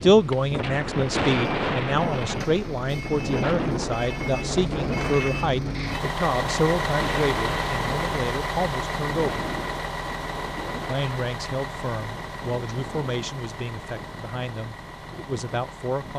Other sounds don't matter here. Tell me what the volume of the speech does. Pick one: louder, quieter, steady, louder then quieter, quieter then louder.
quieter.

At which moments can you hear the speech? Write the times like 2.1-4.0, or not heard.
0.0-9.4, 10.8-16.1.